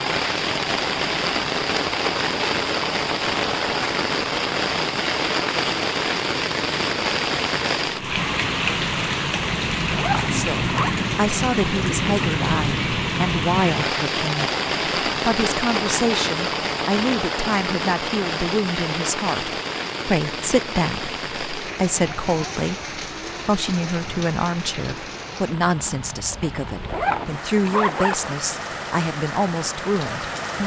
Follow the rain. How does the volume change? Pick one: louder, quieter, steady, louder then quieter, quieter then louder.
quieter.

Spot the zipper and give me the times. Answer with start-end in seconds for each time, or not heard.
9.9-10.9, 26.9-28.4.